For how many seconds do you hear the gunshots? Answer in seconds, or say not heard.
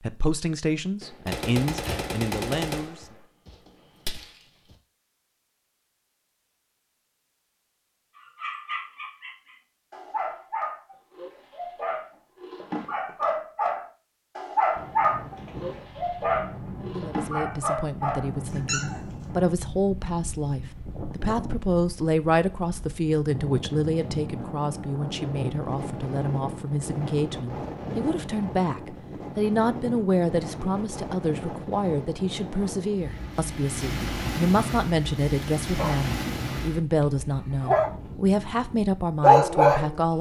4 s.